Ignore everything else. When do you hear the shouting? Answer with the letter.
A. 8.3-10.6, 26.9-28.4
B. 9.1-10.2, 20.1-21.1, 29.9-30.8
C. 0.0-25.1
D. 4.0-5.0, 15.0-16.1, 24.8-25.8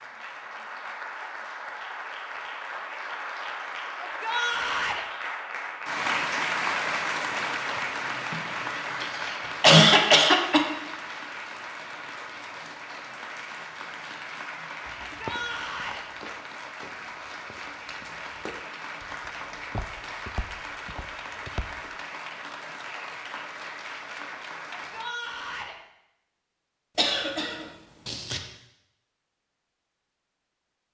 D.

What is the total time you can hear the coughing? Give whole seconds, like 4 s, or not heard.
4 s.